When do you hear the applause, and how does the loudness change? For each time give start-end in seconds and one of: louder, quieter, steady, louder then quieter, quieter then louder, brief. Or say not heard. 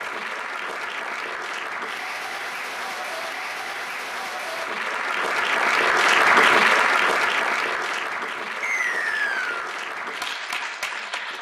0.0-11.3 louder then quieter.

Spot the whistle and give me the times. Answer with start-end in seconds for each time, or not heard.
8.6-9.6.